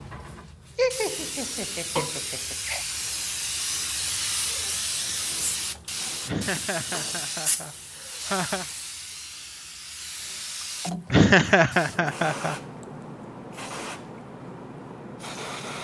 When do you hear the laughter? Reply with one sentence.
You can hear the laughter from 0.8 to 2.9 s, from 6.2 to 8.7 s and from 11.1 to 12.6 s.